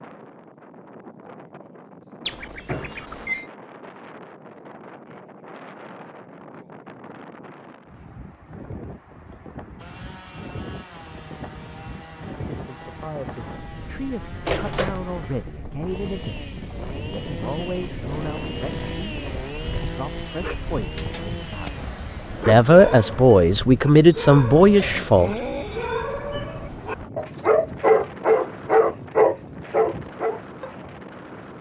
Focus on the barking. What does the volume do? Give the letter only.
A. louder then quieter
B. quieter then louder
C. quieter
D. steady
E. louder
E.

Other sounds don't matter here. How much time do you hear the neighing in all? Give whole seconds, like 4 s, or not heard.
3 s.